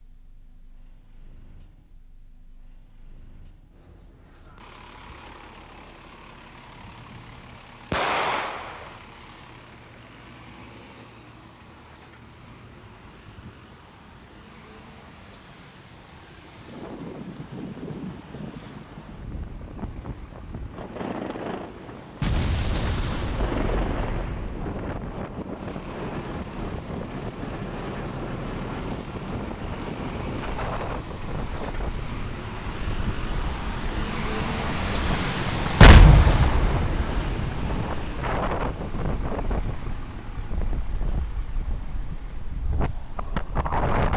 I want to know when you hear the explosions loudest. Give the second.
36 s.